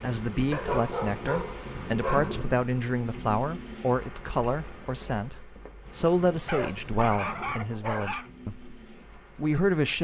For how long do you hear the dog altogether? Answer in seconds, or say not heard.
4 s.